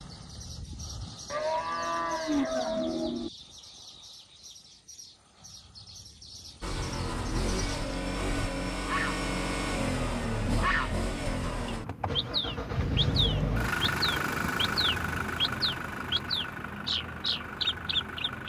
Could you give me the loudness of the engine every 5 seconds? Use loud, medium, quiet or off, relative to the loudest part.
off, loud, loud, medium.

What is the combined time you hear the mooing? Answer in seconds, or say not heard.
2 s.